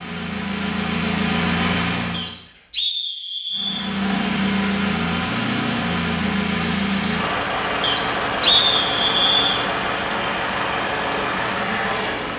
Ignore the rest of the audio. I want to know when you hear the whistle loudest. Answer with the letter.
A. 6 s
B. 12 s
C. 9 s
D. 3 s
C.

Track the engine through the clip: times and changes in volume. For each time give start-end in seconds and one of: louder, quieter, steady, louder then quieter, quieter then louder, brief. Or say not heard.
0.0-2.3 brief
3.5-12.3 steady.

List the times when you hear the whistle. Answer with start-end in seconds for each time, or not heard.
2.1-3.9, 7.8-9.5.